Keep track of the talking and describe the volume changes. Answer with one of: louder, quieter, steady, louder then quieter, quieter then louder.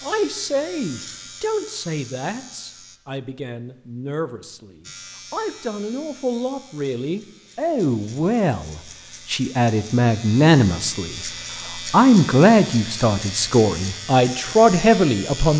louder.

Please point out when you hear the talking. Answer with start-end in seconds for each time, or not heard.
0.0-15.5.